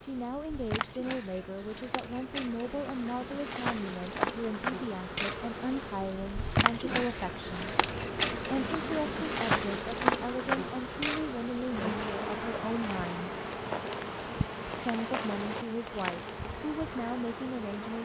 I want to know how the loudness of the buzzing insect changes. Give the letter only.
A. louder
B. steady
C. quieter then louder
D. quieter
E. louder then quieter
E.